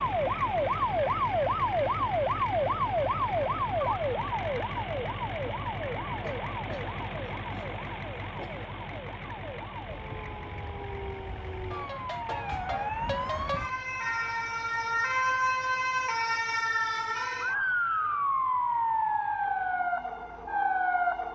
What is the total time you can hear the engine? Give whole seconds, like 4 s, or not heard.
21 s.